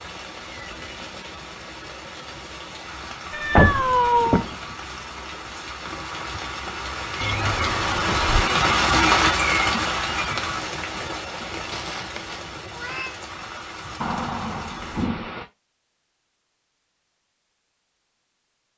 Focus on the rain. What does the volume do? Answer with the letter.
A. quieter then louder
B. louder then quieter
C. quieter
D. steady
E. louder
B.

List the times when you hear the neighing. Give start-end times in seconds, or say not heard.
not heard.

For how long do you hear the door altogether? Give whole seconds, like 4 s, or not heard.
4 s.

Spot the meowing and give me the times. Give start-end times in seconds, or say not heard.
3.3-4.5, 11.7-13.2.